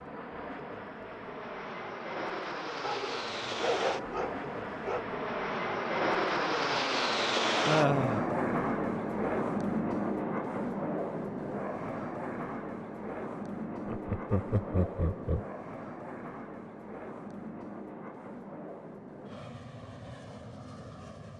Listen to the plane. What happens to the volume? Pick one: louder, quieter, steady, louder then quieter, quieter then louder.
louder then quieter.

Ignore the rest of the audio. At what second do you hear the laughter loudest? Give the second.
8 s.